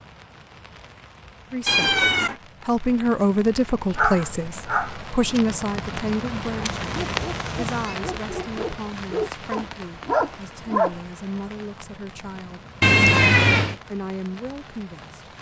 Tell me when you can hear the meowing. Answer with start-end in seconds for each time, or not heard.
1.6-2.4, 6.7-8.0, 12.8-13.8.